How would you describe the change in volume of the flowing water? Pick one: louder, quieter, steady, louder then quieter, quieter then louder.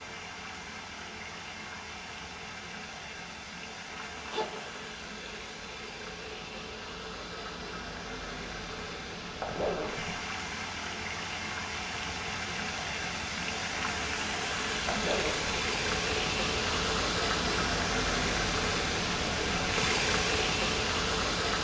louder.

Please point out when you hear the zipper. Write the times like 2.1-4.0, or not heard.
4.0-4.9, 9.4-10.2, 14.8-15.6.